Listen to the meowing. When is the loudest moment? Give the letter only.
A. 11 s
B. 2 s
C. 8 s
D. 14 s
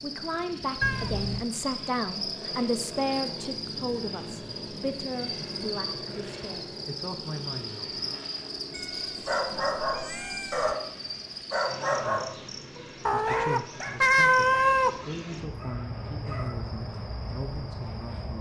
D.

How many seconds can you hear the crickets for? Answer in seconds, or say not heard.
18 s.